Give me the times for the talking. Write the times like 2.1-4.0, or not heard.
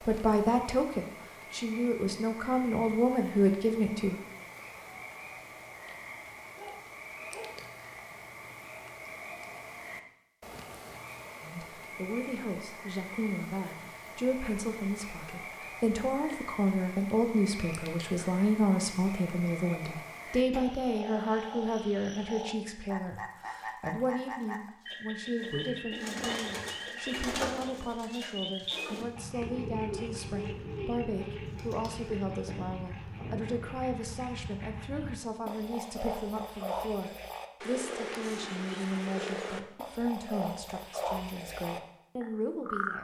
0.1-4.2, 11.4-42.9.